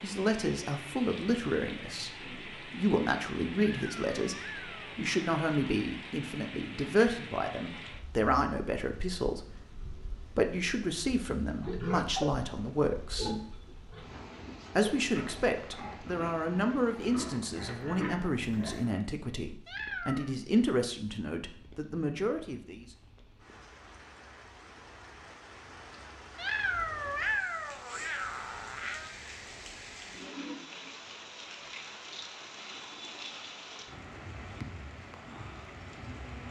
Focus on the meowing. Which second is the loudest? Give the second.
27 s.